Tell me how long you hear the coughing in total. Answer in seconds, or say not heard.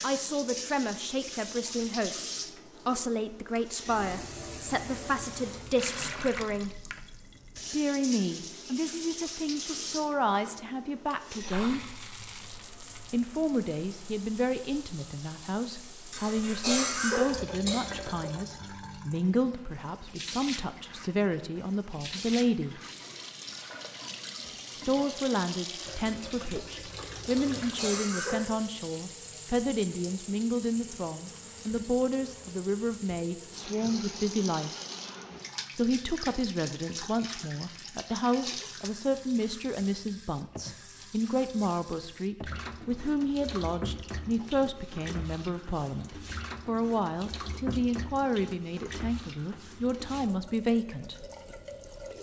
3 s.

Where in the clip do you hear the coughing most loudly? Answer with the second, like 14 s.
17 s.